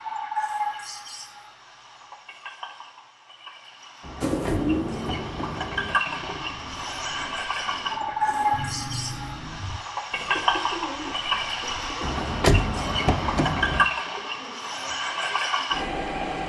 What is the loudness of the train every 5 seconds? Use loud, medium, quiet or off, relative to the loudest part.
medium, loud, loud, loud.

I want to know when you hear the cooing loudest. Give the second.
5 s.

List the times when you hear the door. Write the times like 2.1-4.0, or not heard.
4.0-6.0, 12.0-13.8.